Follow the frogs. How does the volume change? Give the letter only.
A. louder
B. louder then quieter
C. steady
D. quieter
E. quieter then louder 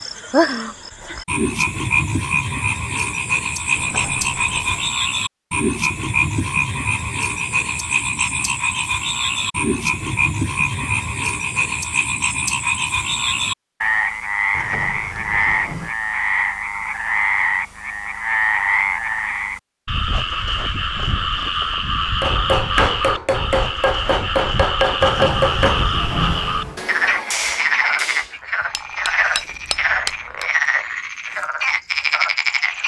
C.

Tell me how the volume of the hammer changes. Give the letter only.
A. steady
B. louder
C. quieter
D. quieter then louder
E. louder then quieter
C.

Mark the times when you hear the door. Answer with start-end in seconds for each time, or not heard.
3.8-5.0, 14.5-15.9, 25.0-26.9.